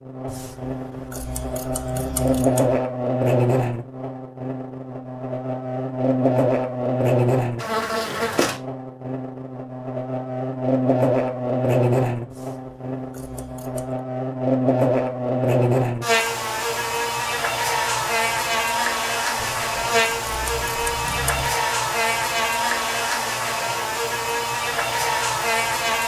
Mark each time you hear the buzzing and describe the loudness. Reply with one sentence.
You can hear the buzzing from 0.0 to 26.0 s, at a steady volume.